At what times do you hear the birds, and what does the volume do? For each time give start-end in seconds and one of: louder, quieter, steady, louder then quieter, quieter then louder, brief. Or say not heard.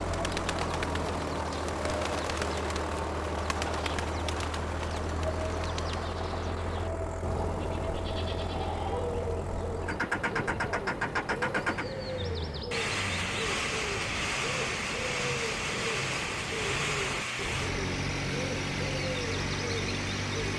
0.0-20.5 steady.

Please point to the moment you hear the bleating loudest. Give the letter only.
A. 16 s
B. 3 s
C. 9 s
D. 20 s
C.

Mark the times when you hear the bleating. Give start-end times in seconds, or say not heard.
7.5-9.1.